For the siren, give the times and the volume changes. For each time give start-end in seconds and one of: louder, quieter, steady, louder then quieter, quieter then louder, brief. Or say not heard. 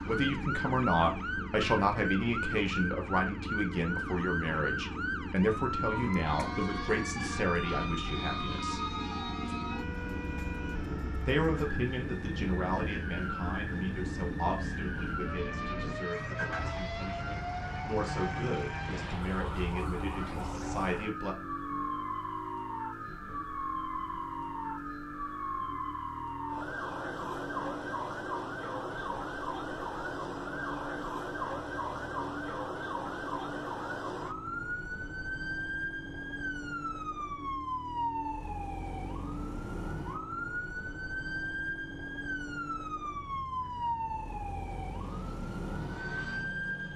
0.0-46.9 steady.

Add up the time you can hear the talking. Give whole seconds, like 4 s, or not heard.
19 s.